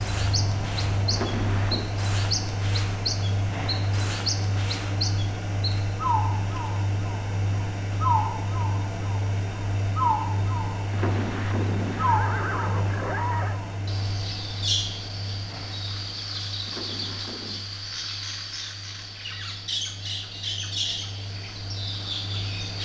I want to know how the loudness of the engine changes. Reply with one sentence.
The loudness of the engine goes down.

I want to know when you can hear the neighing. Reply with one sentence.
You can hear the neighing from 1.1 to 1.9 s, from 10.8 to 13.6 s and from 16.6 to 17.6 s.